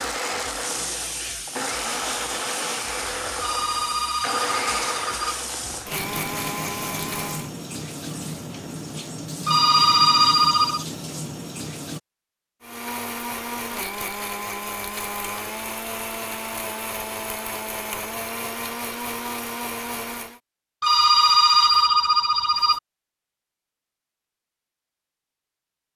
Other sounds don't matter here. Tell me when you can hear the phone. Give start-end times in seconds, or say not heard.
3.4-5.4, 9.4-10.8, 20.8-22.8.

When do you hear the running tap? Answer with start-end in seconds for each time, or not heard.
0.5-12.0.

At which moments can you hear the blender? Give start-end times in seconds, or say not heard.
0.0-7.5, 12.6-20.4.